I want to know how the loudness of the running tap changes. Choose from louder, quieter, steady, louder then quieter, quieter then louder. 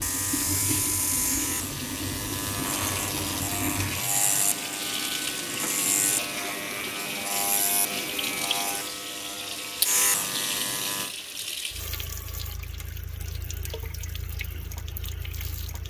quieter.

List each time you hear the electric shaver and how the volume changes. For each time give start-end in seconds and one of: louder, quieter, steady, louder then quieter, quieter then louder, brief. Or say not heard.
0.0-11.1 steady.